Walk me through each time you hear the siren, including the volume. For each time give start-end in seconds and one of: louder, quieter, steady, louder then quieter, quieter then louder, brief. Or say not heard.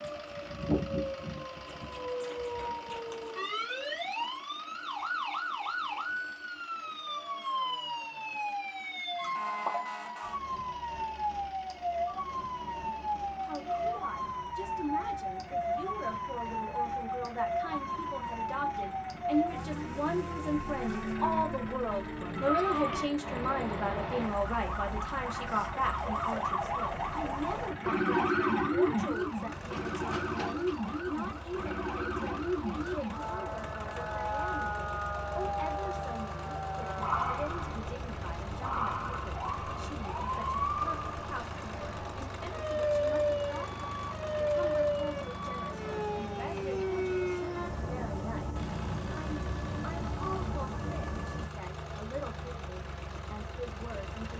0.0-51.5 steady.